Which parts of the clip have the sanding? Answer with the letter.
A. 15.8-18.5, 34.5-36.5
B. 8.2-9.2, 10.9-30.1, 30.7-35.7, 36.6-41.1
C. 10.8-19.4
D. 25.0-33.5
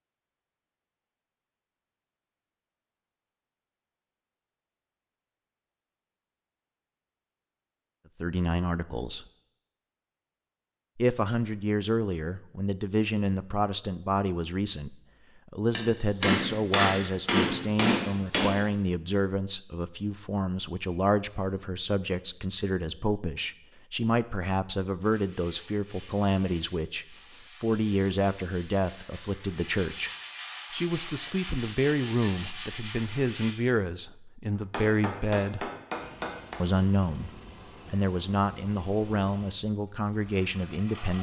D.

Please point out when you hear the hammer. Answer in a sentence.
The hammer can be heard from 15.8 to 18.5 s and from 34.5 to 36.5 s.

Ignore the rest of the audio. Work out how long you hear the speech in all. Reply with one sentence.
The speech can be heard for 30 seconds in total.